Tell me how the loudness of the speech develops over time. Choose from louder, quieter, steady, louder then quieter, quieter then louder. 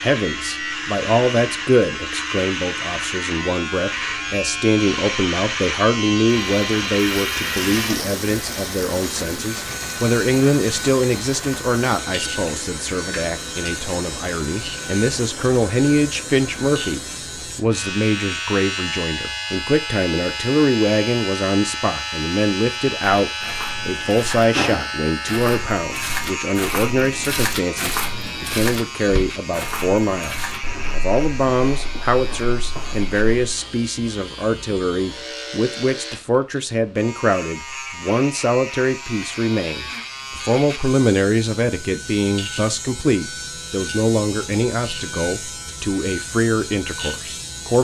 steady.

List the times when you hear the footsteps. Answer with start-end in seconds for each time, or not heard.
23.2-33.5.